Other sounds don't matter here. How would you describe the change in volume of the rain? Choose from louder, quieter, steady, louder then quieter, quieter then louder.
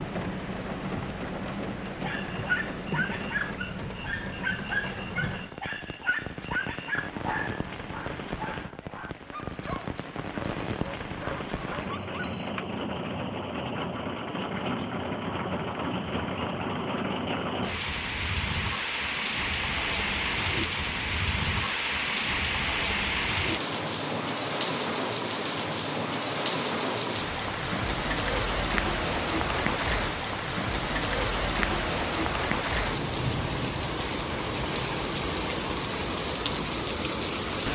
louder.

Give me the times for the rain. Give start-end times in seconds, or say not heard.
0.0-37.7.